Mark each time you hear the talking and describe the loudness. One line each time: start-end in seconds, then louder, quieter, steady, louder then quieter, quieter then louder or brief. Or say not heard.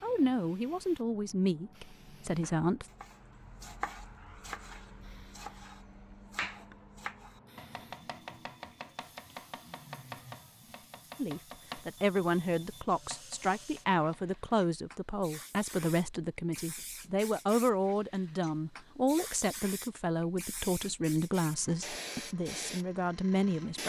0.0-2.9 brief
11.2-23.8 steady.